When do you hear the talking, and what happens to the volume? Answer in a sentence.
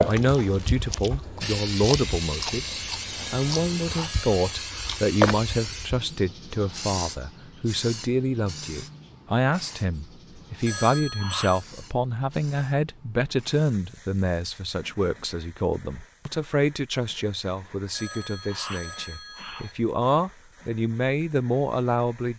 The talking can be heard from 0.0 to 22.3 s, at a steady volume.